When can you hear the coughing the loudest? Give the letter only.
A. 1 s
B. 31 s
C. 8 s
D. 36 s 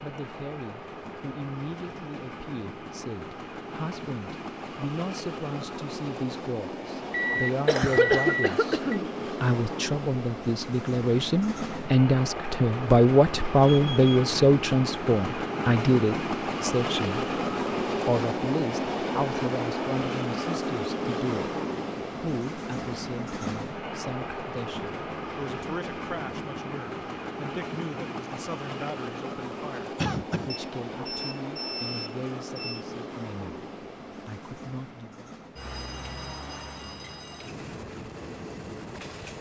C.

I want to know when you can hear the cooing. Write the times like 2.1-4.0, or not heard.
not heard.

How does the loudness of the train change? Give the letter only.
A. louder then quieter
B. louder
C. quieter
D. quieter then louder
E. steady
A.